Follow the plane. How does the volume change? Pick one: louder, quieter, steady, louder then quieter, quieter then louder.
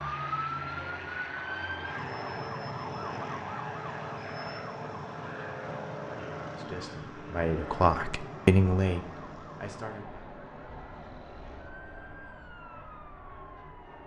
quieter.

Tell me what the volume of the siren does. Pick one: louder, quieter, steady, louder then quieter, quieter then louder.
quieter.